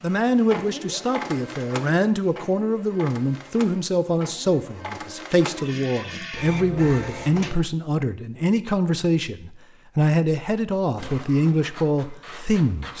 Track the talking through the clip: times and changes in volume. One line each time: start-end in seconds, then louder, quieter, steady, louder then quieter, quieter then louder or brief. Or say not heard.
0.0-12.9 steady.